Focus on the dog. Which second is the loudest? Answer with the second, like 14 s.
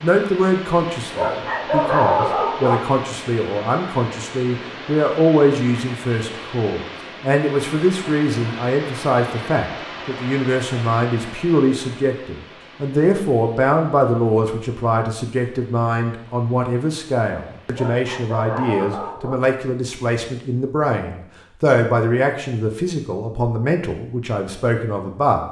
2 s.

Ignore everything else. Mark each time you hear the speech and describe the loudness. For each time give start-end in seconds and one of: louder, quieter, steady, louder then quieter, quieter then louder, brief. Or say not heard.
0.0-25.4 steady.